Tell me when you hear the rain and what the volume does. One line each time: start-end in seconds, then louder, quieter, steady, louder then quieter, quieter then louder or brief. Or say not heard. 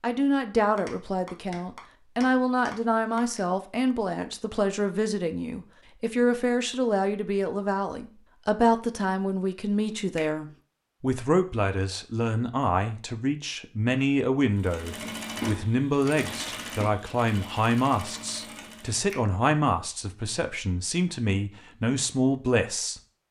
not heard.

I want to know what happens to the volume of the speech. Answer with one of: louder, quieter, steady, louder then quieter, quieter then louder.
steady.